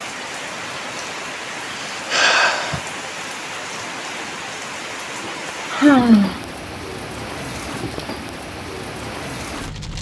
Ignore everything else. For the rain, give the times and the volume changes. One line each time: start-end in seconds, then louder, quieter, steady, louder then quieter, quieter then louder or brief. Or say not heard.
0.0-9.9 steady.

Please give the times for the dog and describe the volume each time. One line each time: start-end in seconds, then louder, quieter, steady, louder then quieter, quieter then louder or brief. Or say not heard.
not heard.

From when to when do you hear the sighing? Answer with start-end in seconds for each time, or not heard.
1.8-2.8, 5.7-6.4.